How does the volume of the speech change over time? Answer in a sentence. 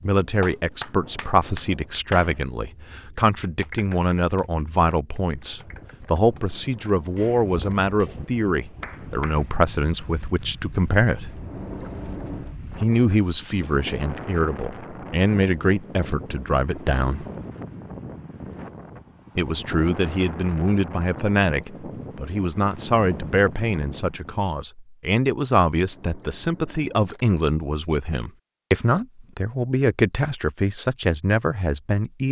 The loudness of the speech stays about the same.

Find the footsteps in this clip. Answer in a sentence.
You can't hear the footsteps here.